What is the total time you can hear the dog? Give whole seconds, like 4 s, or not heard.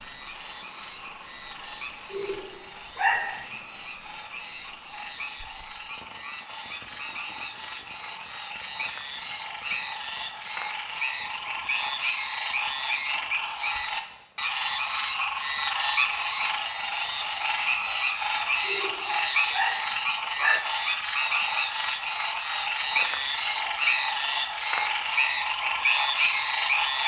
3 s.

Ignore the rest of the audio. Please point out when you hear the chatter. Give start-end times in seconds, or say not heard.
not heard.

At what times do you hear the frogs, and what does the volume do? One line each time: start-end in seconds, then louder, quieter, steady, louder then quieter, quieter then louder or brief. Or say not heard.
0.0-27.0 louder.